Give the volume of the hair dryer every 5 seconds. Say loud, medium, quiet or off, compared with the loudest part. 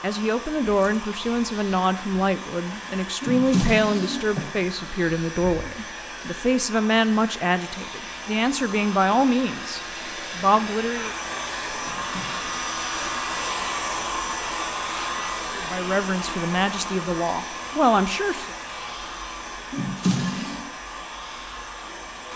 medium, medium, loud, loud, medium.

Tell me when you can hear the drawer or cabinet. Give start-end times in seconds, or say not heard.
3.2-4.5, 11.8-12.4, 19.7-20.6.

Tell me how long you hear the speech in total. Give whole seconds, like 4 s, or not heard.
14 s.